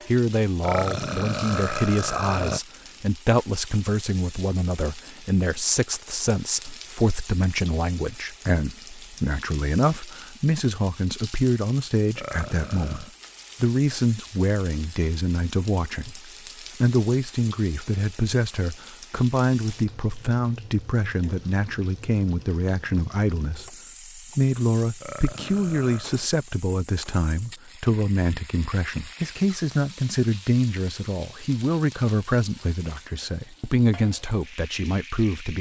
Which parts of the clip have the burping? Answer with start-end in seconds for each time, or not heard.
0.6-2.6, 12.2-13.1, 25.0-26.1.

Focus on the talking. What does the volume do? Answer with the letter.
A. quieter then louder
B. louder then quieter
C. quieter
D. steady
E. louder
D.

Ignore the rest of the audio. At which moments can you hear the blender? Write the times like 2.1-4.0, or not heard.
not heard.